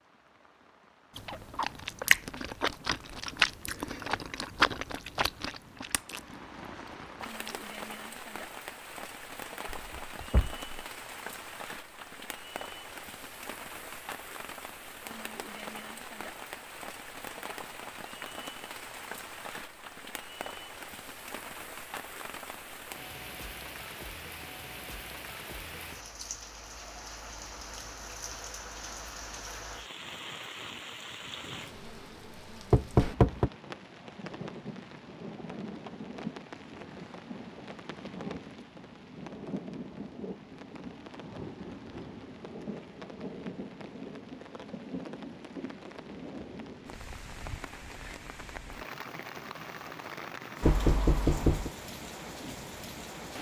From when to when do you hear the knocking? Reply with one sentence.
You can hear the knocking from 9.7 to 10.6 s, from 32.7 to 33.5 s and from 50.6 to 51.7 s.